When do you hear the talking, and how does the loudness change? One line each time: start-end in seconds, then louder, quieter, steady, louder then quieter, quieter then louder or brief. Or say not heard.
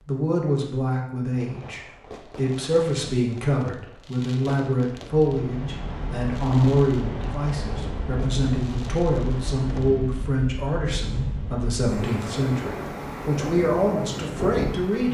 0.1-15.0 steady.